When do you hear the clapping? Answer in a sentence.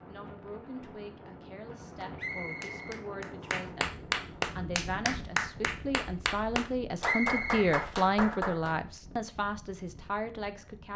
The clapping can be heard from 2.0 to 8.8 s.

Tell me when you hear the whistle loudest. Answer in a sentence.
The loudest moment of the whistle is at 7 seconds.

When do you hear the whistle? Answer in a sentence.
The whistle can be heard from 2.1 to 3.7 s and from 7.0 to 7.8 s.